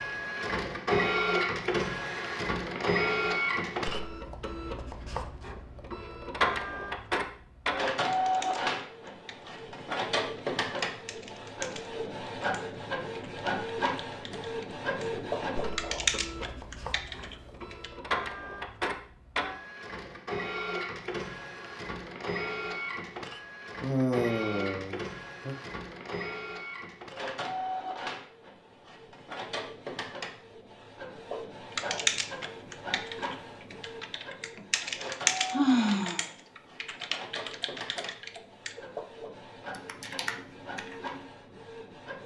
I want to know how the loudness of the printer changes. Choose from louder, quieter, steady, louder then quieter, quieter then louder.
quieter.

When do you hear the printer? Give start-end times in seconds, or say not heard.
0.0-42.2.